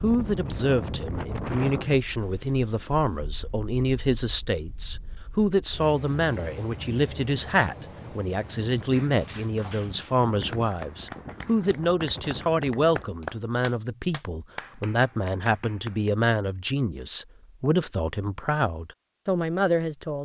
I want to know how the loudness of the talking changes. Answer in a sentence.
The loudness of the talking stays about the same.